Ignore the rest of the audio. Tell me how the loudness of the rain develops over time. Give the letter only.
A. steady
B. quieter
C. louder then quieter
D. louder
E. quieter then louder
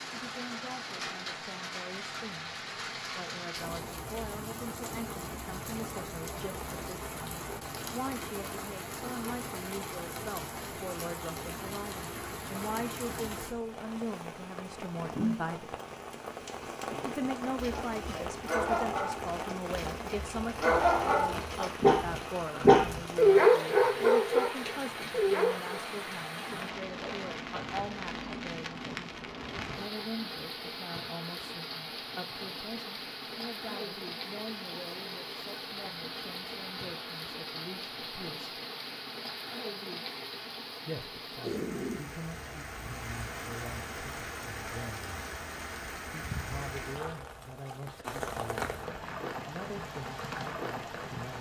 A.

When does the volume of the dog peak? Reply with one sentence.
The volume of the dog peaks at 23 seconds.